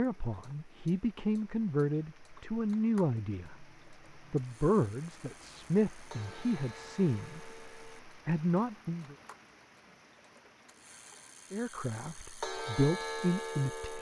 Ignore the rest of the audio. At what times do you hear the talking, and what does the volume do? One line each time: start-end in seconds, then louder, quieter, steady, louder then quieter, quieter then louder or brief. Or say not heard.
0.0-9.2 steady
11.5-13.9 brief.